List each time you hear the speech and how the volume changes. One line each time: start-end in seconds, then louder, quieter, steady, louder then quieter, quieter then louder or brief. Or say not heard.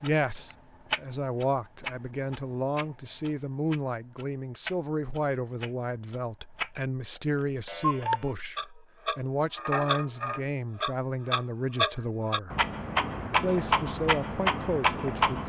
0.0-12.6 steady
13.4-15.4 brief.